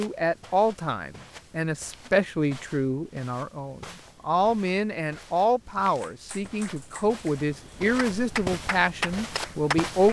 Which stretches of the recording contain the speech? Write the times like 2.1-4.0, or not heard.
0.0-10.0.